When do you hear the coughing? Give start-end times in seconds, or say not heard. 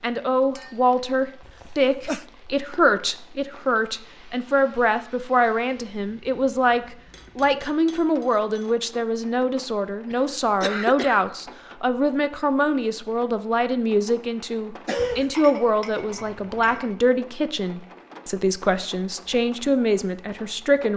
1.4-2.2, 10.1-11.2, 14.8-15.3.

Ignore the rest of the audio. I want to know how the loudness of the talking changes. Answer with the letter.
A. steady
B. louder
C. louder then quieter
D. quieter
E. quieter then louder
A.